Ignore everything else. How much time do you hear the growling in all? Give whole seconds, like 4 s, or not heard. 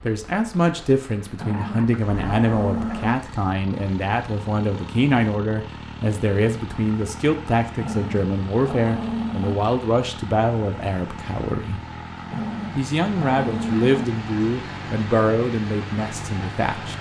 5 s.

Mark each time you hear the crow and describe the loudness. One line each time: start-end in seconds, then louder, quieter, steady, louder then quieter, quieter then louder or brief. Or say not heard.
not heard.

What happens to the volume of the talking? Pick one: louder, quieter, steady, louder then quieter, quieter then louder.
steady.